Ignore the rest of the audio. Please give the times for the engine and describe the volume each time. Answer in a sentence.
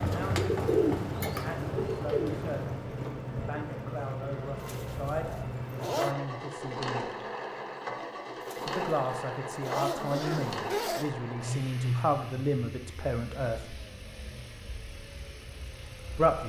The engine can be heard from 0.0 to 16.4 s, getting quieter.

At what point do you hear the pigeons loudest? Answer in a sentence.
The loudest moment of the pigeons is at 1 second.